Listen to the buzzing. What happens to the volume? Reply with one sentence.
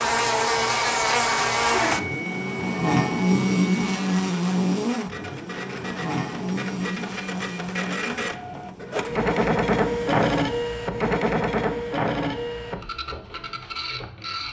The loudness of the buzzing goes down.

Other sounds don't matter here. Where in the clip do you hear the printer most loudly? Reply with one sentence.
The loudest moment of the printer is at 10 seconds.